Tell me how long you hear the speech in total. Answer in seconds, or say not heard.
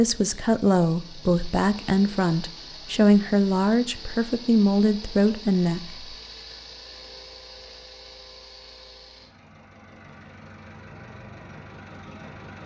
6 s.